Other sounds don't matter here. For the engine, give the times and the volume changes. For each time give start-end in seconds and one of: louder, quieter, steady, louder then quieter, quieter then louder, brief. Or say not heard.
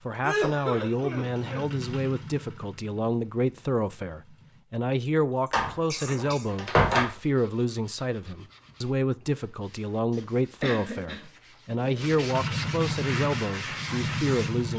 0.0-4.7 louder then quieter
12.2-14.7 brief.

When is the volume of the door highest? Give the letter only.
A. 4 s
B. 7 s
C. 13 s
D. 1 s
B.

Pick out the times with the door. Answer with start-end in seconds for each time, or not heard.
5.5-7.1.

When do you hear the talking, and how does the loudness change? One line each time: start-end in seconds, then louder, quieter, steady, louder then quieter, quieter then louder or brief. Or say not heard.
0.1-14.7 steady.